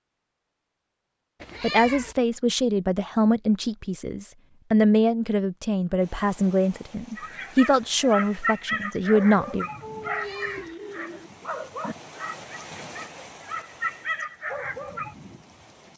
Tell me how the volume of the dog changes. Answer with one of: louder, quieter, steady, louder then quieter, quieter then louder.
quieter then louder.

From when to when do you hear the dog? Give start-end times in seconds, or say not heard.
7.2-15.2.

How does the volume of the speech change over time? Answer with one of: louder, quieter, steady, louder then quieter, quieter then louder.
steady.